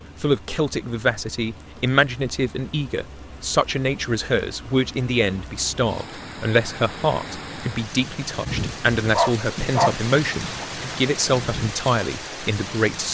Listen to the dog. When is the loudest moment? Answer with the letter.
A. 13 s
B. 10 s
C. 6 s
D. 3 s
B.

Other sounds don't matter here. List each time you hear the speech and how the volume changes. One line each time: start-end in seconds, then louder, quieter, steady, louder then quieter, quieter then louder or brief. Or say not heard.
0.2-13.1 steady.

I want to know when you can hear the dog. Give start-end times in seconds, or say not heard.
8.4-10.7.